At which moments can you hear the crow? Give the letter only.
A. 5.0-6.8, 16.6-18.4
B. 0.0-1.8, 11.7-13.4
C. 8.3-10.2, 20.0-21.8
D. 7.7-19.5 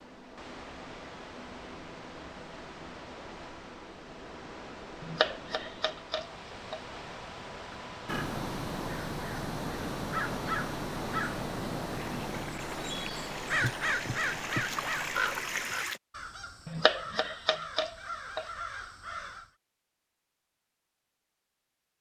D.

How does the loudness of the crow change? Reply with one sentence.
The volume of the crow goes down.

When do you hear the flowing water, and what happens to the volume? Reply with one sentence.
You can hear the flowing water from 0.0 to 16.0 s, getting louder.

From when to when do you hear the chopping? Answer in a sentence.
You can hear the chopping from 5.0 to 6.8 s and from 16.6 to 18.4 s.